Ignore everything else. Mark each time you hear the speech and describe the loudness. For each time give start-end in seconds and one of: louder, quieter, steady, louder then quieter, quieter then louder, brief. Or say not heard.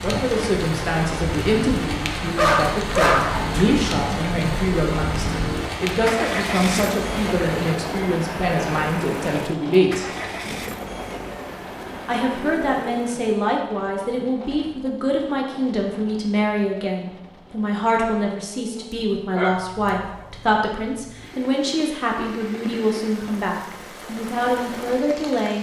0.0-10.1 steady
12.1-25.5 steady.